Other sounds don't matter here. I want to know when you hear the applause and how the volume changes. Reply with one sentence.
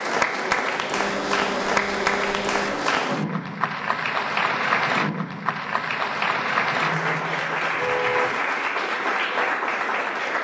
The applause can be heard from 0.0 to 10.3 s, at a steady volume.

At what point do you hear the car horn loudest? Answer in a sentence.
The volume of the car horn peaks at 8 seconds.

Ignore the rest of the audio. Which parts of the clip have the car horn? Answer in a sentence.
You can hear the car horn from 0.9 to 2.9 s and from 7.8 to 8.4 s.